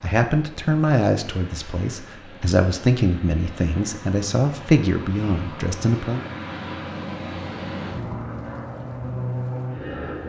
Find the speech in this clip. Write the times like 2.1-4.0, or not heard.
0.0-6.2.